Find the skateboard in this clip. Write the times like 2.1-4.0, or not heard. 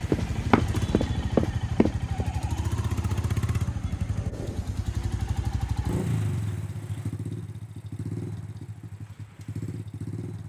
not heard.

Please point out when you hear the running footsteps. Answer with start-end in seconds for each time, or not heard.
0.1-2.4.